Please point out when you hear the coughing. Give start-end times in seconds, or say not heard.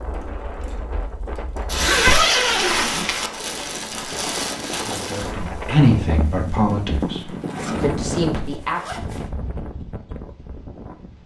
not heard.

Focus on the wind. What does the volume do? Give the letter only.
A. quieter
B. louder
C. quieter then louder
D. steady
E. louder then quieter
E.